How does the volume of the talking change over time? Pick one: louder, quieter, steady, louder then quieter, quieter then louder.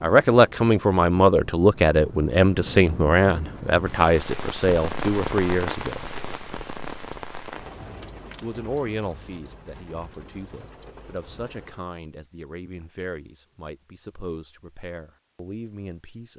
quieter.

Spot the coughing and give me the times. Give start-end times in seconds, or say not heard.
not heard.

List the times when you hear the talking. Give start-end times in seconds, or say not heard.
0.0-6.0, 8.4-16.3.